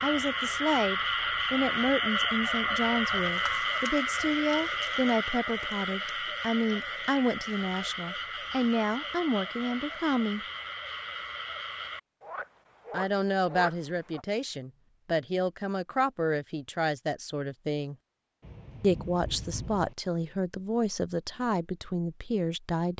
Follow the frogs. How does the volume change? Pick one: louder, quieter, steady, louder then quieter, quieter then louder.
quieter.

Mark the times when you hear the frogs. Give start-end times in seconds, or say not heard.
0.0-14.2.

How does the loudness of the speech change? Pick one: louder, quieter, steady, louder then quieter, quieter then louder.
steady.